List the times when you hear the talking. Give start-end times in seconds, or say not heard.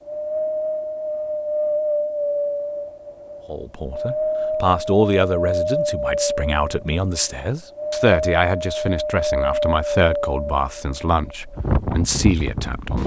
3.5-13.0.